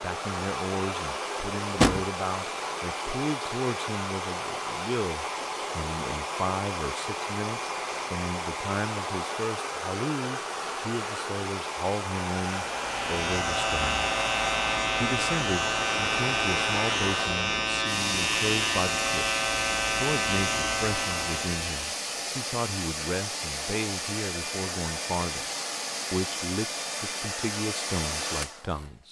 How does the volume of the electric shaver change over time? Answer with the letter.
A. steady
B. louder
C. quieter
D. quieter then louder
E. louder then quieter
A.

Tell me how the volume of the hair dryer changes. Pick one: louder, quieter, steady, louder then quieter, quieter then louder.
steady.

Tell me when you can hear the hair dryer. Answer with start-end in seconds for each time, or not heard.
0.0-28.9.